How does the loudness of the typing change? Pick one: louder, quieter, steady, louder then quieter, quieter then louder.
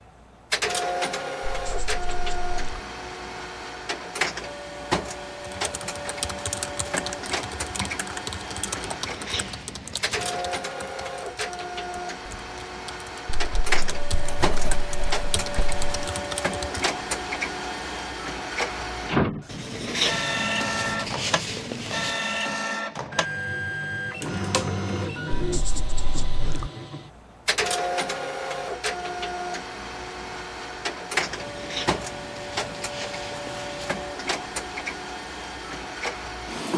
quieter then louder.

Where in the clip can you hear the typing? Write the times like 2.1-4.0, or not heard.
5.4-16.9.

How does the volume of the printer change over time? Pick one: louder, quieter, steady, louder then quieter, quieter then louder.
steady.